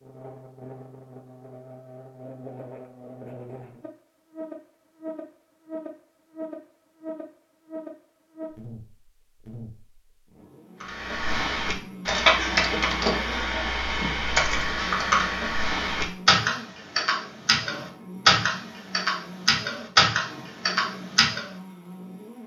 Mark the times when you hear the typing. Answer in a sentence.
The typing can be heard from 10.8 to 21.4 s.